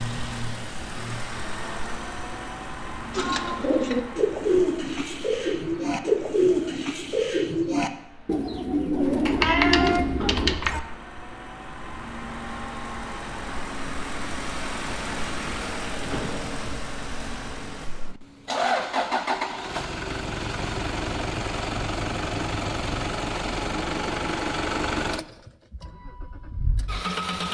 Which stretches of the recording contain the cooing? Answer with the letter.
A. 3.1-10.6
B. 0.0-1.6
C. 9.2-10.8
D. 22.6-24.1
A.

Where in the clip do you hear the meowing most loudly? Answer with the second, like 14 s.
10 s.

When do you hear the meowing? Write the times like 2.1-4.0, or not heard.
9.2-10.8.